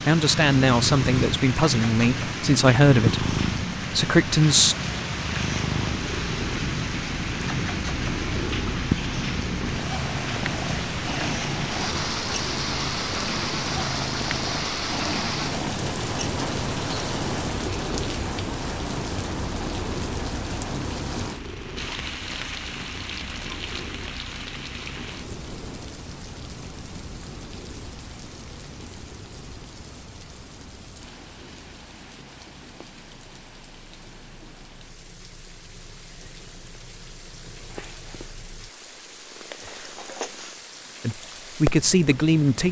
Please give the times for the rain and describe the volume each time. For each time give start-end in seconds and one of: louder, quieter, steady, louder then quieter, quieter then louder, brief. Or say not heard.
0.0-42.6 quieter.